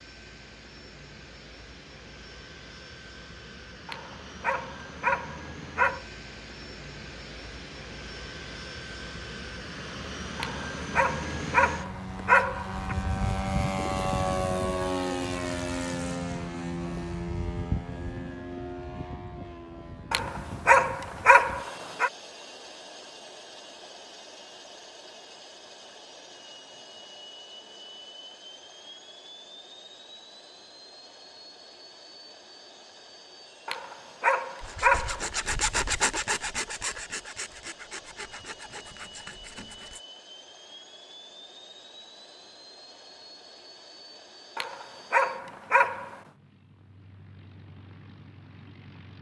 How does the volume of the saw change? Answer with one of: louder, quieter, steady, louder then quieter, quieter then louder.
quieter.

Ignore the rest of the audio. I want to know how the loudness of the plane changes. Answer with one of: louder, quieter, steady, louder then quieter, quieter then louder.
louder then quieter.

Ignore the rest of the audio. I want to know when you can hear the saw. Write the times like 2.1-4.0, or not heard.
34.6-40.0.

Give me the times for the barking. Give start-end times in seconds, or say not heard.
3.9-6.0, 10.3-12.9, 20.1-22.1, 33.6-35.2, 44.5-46.1.